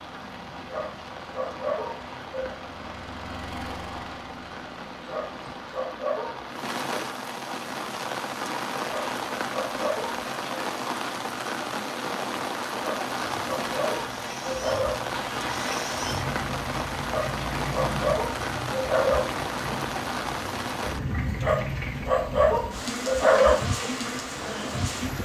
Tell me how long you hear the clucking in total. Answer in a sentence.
The clucking can't be heard in this clip.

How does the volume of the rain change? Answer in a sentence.
The volume of the rain goes up.